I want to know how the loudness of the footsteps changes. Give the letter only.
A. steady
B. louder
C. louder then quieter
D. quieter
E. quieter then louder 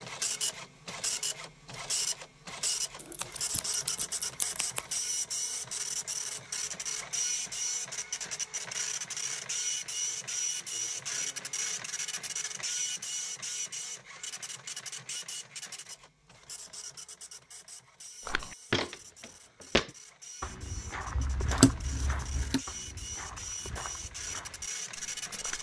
D.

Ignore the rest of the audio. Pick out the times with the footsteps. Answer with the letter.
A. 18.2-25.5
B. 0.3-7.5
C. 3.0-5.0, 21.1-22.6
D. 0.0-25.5
A.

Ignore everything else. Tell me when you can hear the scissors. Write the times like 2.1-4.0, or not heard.
3.0-5.0, 21.1-22.6.